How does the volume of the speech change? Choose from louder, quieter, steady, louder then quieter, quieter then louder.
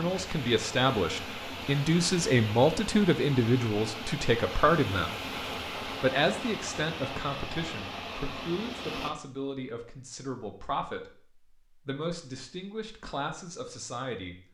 quieter.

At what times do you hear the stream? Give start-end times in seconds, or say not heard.
0.0-9.1.